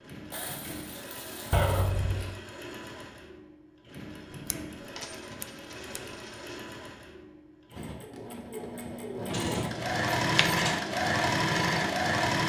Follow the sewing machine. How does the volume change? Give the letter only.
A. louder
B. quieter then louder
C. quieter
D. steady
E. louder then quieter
A.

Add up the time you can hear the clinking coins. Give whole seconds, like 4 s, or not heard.
5 s.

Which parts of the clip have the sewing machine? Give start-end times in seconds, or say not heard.
0.0-12.4.